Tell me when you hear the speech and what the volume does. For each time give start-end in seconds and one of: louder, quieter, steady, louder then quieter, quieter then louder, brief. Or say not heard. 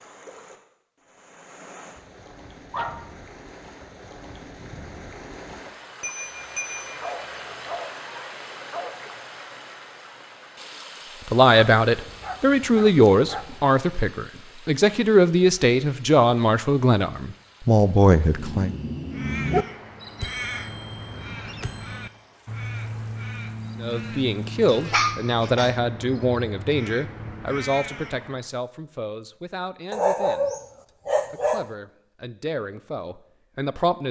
11.2-18.8 steady
23.8-30.6 quieter
31.3-34.0 brief.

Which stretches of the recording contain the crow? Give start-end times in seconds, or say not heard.
19.1-28.5.